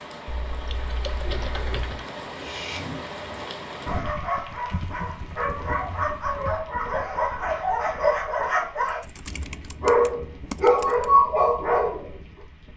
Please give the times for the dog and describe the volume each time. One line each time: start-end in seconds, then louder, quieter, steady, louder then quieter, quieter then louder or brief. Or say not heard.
2.3-12.1 louder.